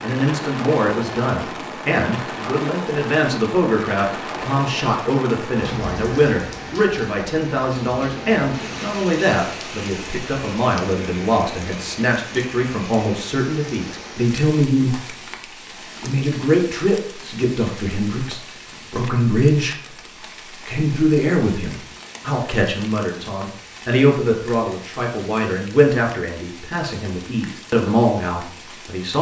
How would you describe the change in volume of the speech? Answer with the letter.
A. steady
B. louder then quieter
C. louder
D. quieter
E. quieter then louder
A.